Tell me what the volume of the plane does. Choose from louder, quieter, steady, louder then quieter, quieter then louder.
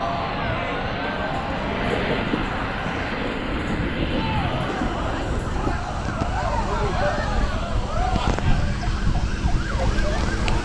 quieter.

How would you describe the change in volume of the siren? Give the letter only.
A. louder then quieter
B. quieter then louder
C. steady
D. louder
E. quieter
D.